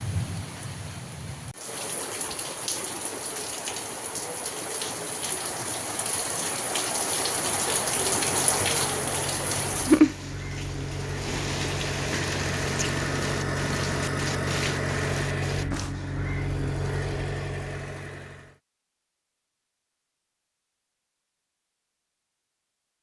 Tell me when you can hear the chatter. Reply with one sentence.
You can't hear the chatter here.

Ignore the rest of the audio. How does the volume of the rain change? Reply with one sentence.
The loudness of the rain goes up, then down.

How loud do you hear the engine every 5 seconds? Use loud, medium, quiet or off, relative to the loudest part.
off, medium, loud, loud, off.